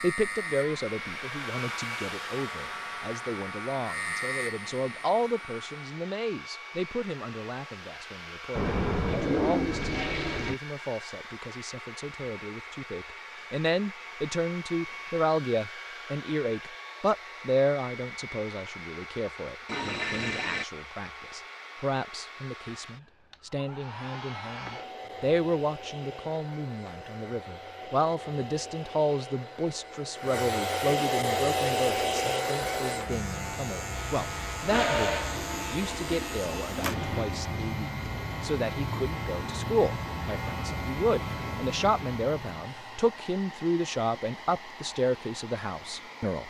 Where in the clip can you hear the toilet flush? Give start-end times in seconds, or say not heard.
8.6-10.6, 19.6-20.6, 34.6-37.2.